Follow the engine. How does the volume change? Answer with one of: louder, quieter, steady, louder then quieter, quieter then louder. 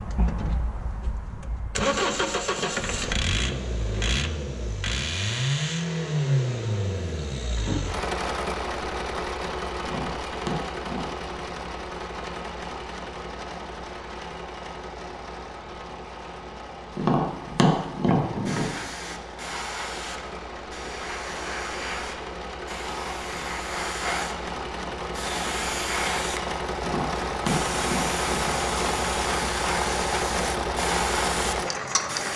quieter then louder.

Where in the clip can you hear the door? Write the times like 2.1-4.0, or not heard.
7.0-7.8, 18.1-18.7.